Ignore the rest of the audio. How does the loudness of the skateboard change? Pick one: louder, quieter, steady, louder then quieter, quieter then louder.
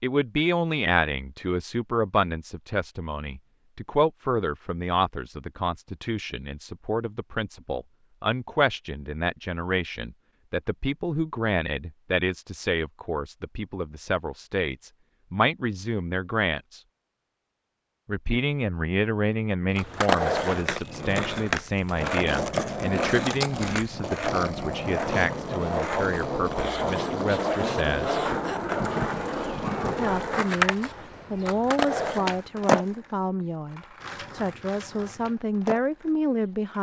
quieter.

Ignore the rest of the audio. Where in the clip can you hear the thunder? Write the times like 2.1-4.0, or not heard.
28.2-30.1.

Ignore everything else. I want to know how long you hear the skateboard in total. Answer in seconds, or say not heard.
17 s.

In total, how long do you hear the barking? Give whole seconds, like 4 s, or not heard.
not heard.